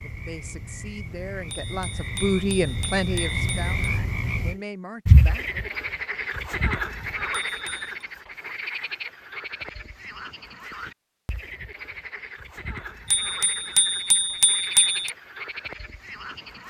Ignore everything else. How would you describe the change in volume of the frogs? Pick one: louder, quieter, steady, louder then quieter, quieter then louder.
louder then quieter.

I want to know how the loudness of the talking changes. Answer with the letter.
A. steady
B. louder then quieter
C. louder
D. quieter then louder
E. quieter
B.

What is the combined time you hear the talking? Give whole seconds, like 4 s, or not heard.
6 s.